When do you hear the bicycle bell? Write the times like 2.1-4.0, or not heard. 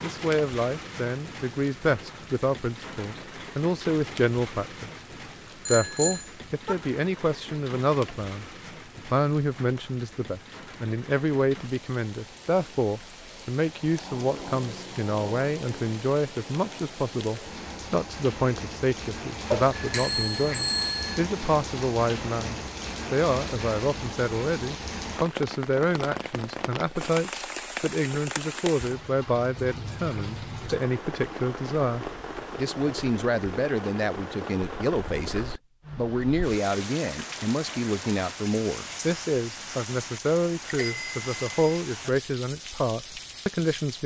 5.7-6.8, 19.5-21.2, 40.6-41.8.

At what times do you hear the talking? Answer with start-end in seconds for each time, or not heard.
0.0-4.9, 5.7-44.0.